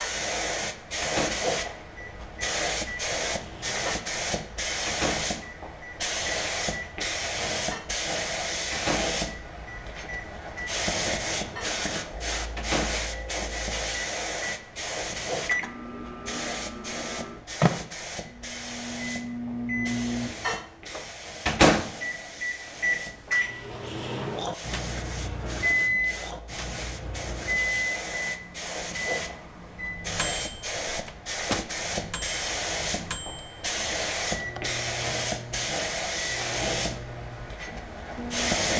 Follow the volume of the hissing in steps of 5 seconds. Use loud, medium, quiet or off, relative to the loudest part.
loud, loud, loud, medium, medium, medium, loud, loud.